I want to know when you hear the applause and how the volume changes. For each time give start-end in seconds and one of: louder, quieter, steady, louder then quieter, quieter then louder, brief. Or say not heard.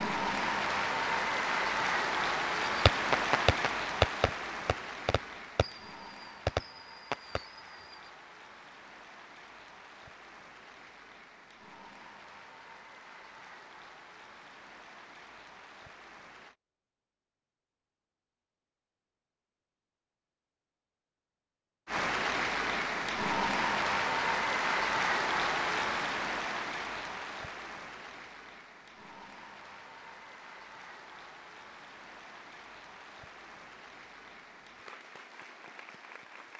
0.0-16.6 quieter
21.9-36.5 quieter.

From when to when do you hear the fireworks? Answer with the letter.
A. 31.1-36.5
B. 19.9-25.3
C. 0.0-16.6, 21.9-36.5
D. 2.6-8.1
D.